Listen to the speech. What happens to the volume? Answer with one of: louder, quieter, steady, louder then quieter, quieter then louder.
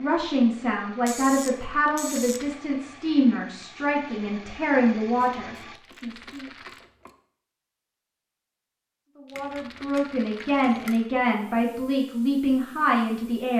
steady.